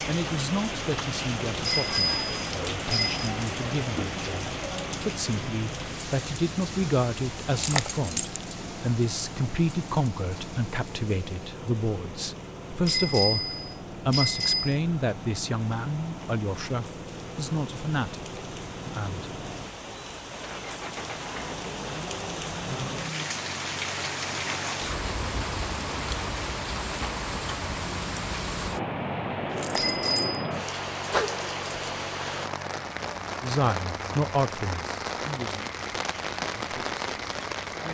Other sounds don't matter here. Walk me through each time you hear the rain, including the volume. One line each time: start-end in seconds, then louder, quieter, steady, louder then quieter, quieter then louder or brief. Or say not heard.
0.0-37.8 quieter then louder.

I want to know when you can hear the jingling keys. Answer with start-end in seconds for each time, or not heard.
7.5-8.6, 29.5-30.4.